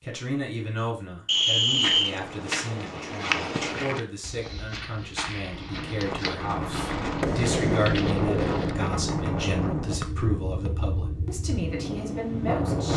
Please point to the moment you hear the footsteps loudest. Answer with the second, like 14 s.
3 s.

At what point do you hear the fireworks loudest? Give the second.
8 s.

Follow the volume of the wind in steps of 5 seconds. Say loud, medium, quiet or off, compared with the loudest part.
off, loud, loud.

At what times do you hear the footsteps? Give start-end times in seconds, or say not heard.
1.4-8.9.